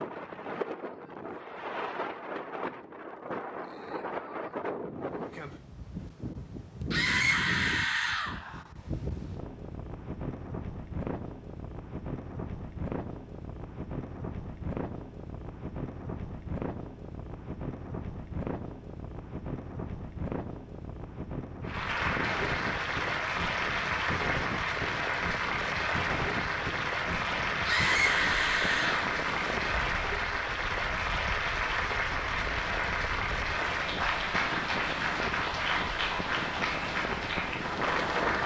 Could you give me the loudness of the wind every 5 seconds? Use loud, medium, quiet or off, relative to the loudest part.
loud, loud, loud, loud, loud, loud, medium, loud.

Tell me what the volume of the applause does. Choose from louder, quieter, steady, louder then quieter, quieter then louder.
steady.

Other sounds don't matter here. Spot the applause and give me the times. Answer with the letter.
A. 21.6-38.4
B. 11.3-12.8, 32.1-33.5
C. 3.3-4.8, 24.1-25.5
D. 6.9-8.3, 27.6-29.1
A.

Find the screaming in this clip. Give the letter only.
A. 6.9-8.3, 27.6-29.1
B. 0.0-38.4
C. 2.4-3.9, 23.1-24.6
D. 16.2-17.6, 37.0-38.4
A.